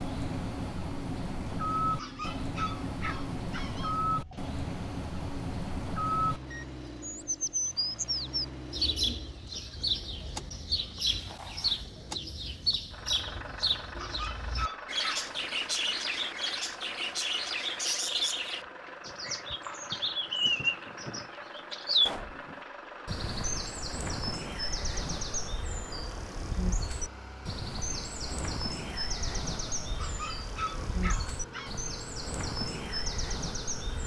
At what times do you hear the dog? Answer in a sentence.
You can hear the dog from 1.9 to 4.0 s, from 13.9 to 15.6 s and from 29.9 to 31.7 s.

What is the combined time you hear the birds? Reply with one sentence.
You can hear the birds for 34 seconds altogether.